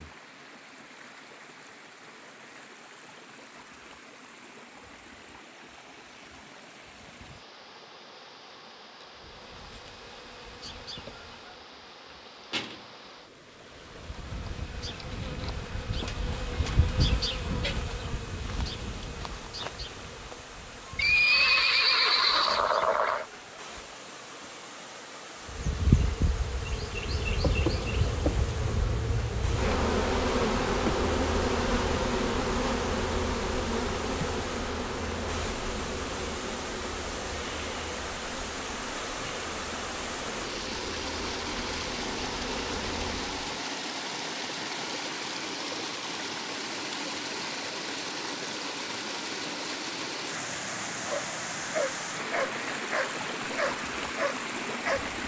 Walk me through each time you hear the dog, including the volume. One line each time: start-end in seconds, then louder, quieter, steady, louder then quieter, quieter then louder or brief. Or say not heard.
51.0-55.1 steady.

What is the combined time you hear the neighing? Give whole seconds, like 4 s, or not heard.
2 s.